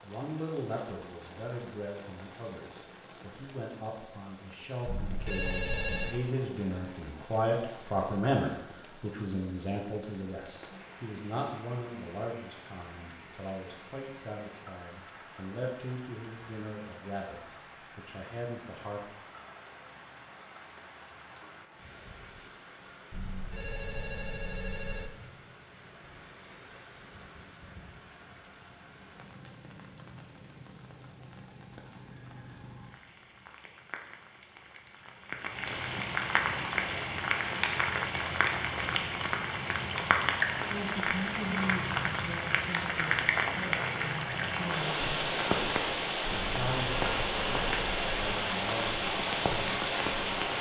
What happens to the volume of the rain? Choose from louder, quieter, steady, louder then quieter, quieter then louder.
louder.